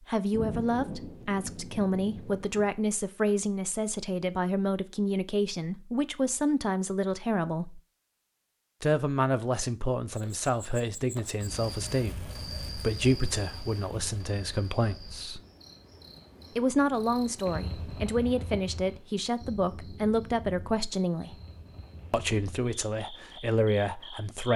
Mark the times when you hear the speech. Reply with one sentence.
The speech can be heard from 0.1 to 7.8 s, from 8.8 to 15.4 s, from 16.6 to 21.4 s and from 22.1 to 24.5 s.